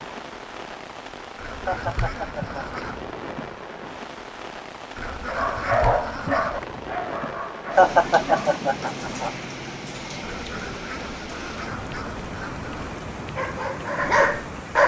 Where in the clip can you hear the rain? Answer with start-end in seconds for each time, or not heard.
0.0-14.8.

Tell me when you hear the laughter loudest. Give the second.
8 s.